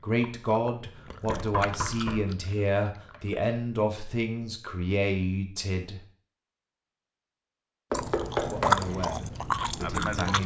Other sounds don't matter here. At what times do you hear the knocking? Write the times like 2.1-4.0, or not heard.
1.2-2.3, 7.9-8.9.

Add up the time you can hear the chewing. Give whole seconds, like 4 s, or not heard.
6 s.